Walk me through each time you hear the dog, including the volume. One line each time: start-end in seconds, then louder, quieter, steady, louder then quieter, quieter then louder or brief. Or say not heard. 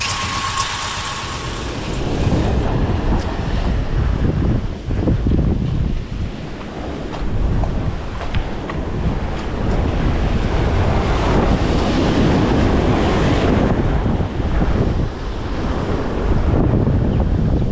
not heard.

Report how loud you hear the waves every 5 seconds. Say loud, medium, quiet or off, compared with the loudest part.
medium, medium, loud, loud.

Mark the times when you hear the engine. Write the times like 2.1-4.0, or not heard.
0.0-2.7.